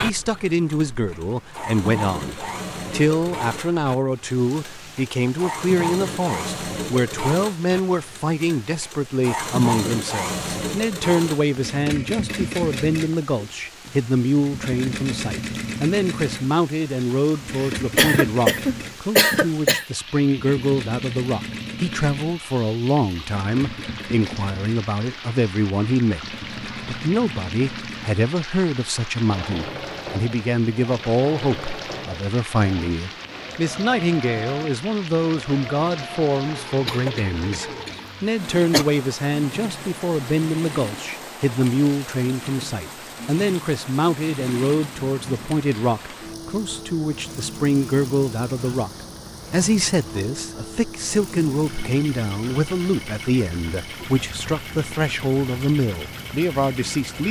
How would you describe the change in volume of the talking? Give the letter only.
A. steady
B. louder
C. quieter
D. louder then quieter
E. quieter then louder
A.